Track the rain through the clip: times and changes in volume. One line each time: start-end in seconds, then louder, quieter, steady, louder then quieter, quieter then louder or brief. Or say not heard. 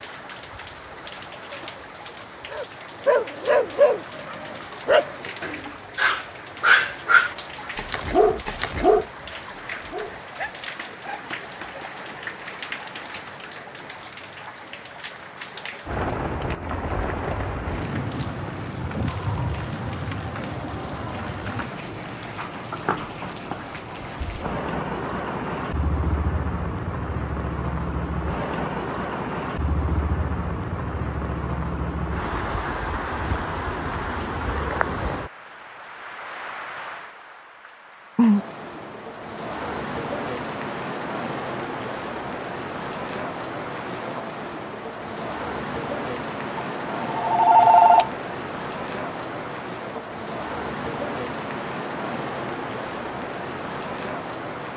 0.0-54.7 louder.